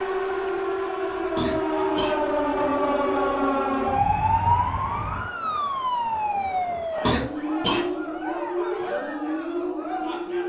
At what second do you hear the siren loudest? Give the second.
4 s.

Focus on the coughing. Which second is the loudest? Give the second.
7 s.